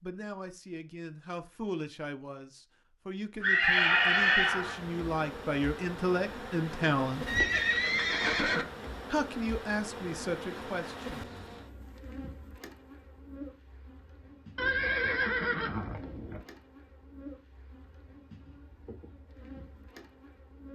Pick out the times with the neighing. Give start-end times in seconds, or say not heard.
3.4-4.8, 7.2-8.7, 14.6-16.4.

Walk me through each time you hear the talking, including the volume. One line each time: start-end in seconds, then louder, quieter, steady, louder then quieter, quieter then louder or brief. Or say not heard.
0.0-7.2 louder
9.1-11.2 brief.